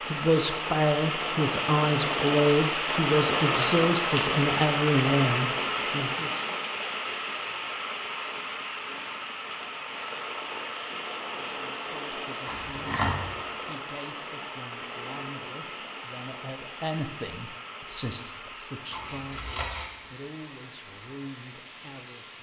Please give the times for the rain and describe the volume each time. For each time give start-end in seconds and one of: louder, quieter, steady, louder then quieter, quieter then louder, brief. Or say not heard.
0.0-22.3 quieter.